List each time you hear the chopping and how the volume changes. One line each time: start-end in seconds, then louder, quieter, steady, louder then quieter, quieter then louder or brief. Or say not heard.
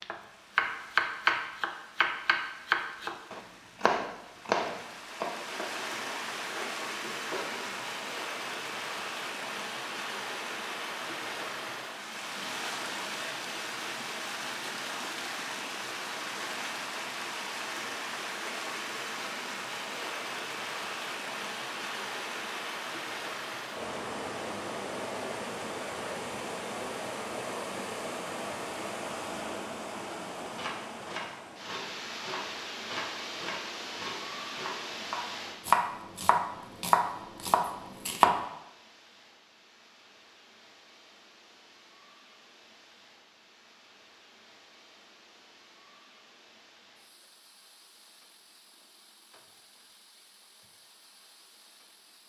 0.0-7.8 quieter
30.6-38.4 louder.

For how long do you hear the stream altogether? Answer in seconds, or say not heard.
52 s.